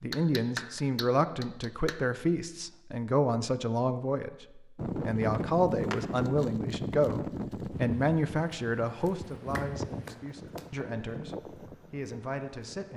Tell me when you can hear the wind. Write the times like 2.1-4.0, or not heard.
4.8-12.9.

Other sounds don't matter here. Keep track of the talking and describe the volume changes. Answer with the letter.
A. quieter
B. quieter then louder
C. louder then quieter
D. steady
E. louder
A.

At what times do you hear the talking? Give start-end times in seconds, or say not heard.
0.0-12.9.